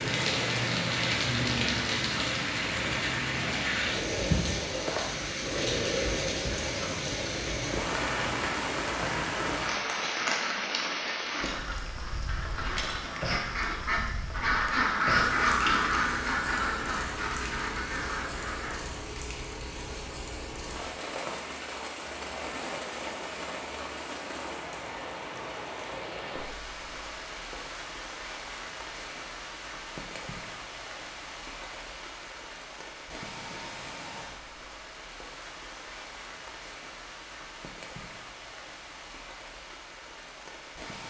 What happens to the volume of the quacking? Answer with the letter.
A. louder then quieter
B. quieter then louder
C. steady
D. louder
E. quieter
A.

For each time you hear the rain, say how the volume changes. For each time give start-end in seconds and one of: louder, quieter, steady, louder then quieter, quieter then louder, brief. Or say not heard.
0.0-41.0 quieter.